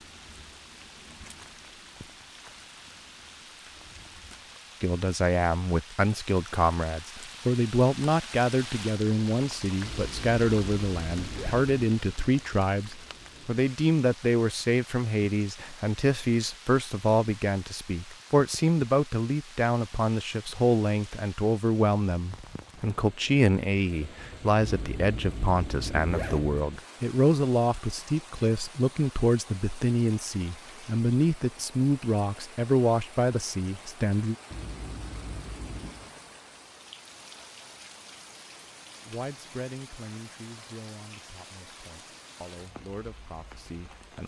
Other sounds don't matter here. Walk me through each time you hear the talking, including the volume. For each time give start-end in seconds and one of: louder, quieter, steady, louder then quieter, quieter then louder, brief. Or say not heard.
4.8-34.4 steady
39.0-44.2 quieter then louder.